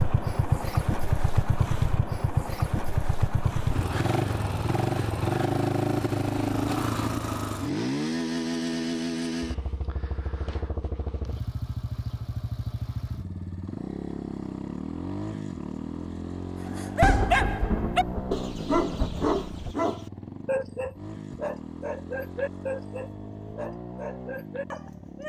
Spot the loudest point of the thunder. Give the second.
17 s.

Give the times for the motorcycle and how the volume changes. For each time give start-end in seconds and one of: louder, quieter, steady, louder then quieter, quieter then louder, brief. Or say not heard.
0.0-25.2 quieter.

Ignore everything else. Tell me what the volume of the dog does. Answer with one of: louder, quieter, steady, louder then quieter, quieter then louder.
quieter.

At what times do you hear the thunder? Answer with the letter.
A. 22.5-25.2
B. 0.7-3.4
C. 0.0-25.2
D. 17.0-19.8
D.